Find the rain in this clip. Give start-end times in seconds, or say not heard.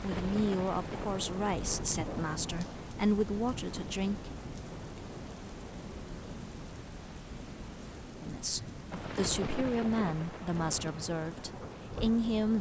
0.0-12.5.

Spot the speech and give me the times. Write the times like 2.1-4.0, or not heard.
0.0-4.3, 8.2-12.5.